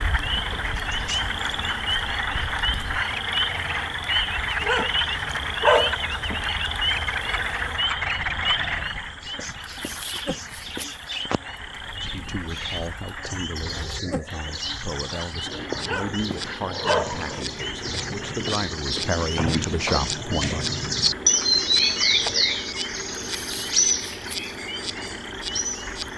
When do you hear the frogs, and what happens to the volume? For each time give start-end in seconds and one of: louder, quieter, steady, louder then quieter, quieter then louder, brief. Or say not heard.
0.0-26.1 quieter.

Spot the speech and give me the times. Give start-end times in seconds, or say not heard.
11.8-20.8.